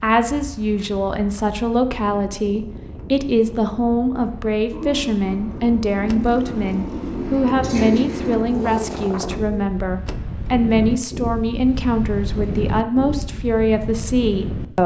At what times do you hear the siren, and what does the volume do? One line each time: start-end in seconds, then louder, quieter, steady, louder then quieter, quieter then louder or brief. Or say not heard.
not heard.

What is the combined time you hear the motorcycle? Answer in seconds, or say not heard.
4 s.